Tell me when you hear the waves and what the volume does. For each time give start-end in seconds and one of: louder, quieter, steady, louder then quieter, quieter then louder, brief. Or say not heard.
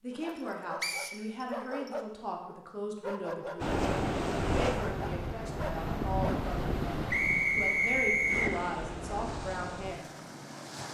3.6-10.9 quieter.